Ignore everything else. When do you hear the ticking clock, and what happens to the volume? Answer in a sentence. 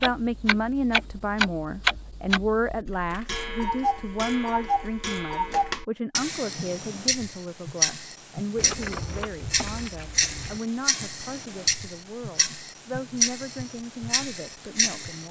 You can hear the ticking clock from 0.0 to 15.2 s, at a steady volume.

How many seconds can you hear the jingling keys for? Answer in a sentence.
The jingling keys can be heard for 2 seconds in total.